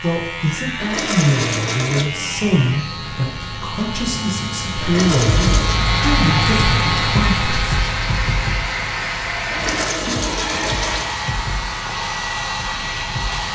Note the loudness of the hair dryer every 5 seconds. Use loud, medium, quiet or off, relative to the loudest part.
off, loud, loud.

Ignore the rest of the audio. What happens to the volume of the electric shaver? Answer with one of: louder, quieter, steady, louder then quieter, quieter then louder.
louder then quieter.